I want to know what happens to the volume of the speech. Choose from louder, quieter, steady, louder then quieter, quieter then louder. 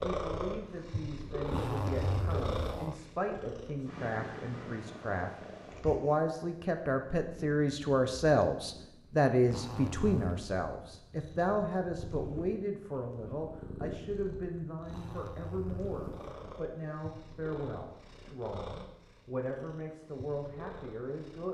louder then quieter.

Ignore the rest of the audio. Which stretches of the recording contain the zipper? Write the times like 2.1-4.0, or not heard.
1.4-3.0, 9.4-10.4, 14.8-16.6.